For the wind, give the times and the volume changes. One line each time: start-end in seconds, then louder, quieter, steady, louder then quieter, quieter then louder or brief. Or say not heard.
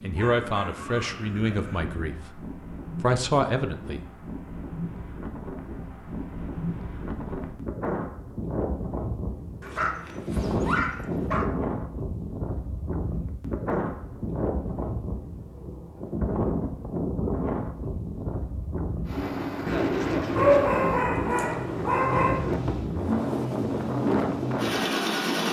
0.0-25.4 louder.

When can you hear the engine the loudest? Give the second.
25 s.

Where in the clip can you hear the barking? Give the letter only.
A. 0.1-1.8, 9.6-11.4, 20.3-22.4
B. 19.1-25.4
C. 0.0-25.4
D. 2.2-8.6
A.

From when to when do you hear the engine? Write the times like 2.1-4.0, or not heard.
19.1-25.4.